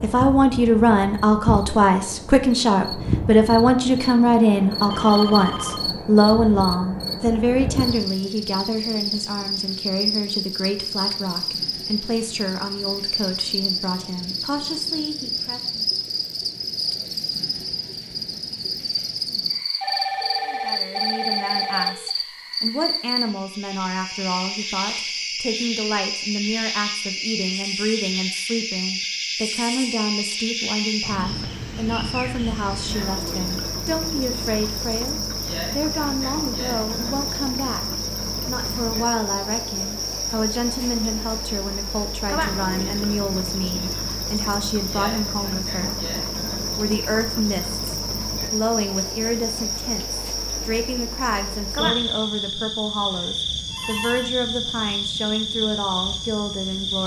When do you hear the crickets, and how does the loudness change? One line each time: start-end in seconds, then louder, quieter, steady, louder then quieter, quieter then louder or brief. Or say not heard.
0.0-57.0 steady.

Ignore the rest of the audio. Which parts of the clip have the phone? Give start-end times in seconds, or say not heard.
4.9-5.8, 19.8-22.1, 53.1-54.3.